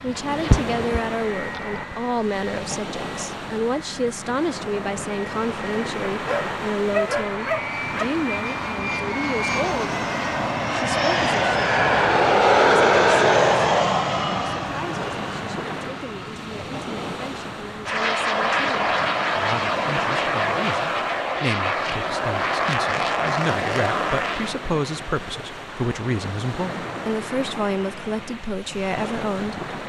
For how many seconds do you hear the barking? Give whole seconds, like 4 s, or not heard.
2 s.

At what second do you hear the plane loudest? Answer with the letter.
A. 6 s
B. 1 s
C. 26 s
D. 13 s
D.